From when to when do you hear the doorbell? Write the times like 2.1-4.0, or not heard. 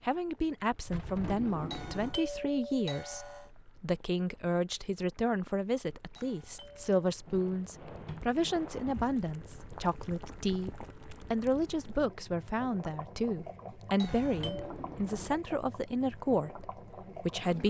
1.7-3.5, 6.2-6.9, 14.0-14.8.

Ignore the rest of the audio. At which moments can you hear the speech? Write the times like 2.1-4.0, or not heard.
0.0-17.6.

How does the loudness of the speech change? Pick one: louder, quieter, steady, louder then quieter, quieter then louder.
steady.